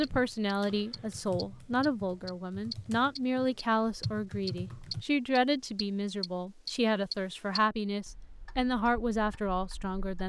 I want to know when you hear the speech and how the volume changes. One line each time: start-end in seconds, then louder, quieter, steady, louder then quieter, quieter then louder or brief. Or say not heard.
0.0-10.2 steady.